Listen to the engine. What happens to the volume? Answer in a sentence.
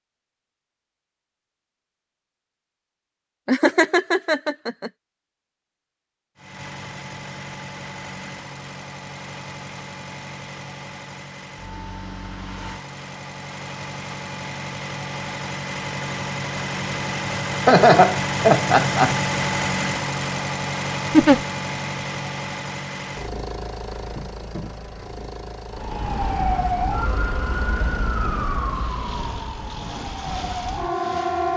The volume of the engine goes up, then down.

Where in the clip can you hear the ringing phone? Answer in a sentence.
The ringing phone can't be heard in this clip.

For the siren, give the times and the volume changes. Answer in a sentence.
The siren can be heard from 25.7 to 31.5 s, getting quieter then louder.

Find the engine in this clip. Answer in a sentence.
You can hear the engine from 6.3 to 31.5 s.